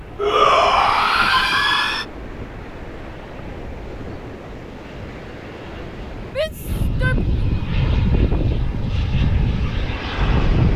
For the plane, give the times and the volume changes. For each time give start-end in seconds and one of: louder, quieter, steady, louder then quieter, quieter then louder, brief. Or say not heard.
0.0-10.7 louder.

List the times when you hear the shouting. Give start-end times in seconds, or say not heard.
0.1-2.0, 6.2-7.3.